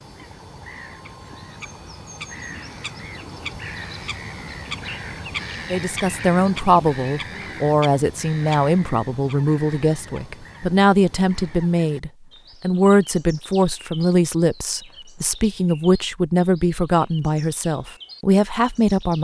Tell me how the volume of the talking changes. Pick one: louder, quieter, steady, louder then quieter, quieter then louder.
steady.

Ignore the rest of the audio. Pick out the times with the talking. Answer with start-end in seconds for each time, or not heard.
5.7-19.1.